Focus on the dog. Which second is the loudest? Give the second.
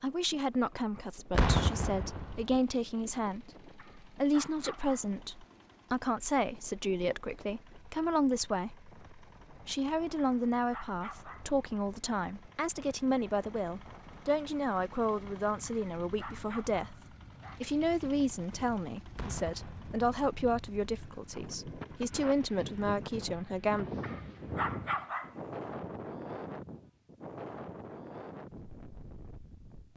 25 s.